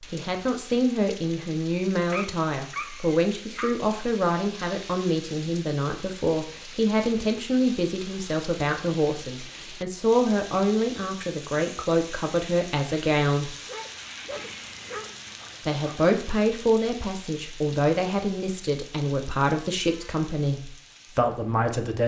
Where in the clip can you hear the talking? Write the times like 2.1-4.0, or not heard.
0.0-13.5, 15.7-22.0.